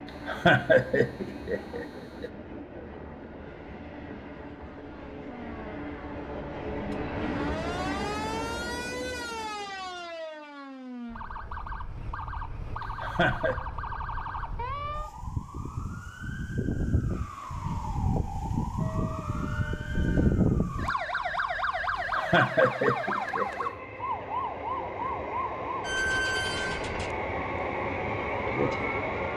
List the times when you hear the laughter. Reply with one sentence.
The laughter can be heard from 0.2 to 2.3 s, from 13.0 to 13.6 s and from 22.1 to 23.7 s.